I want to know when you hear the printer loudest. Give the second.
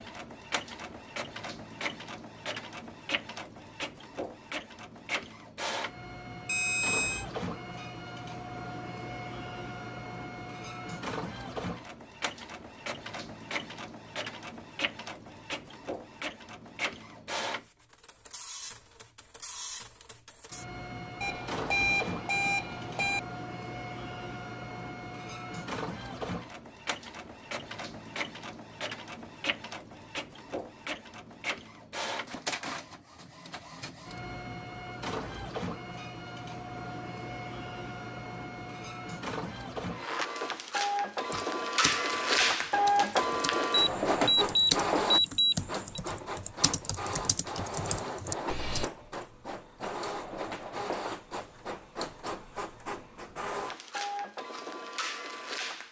43 s.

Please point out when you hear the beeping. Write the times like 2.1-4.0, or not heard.
6.5-7.2, 21.2-23.2, 43.7-46.0.